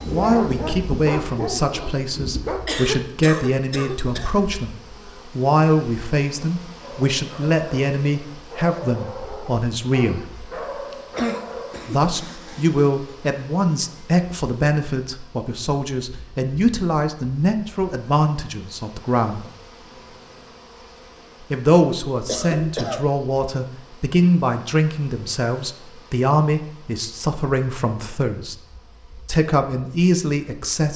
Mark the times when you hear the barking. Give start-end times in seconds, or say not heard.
0.0-2.6, 6.8-11.8.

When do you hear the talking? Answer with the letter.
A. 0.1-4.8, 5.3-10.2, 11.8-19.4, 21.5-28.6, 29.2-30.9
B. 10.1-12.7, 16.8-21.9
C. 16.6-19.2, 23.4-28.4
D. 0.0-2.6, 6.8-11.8
A.